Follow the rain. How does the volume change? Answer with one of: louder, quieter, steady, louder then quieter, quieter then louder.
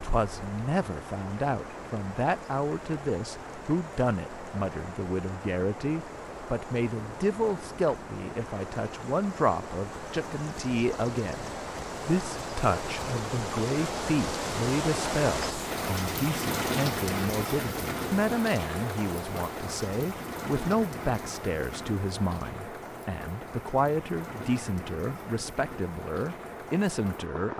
louder then quieter.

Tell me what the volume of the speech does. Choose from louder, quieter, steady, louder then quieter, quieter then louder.
steady.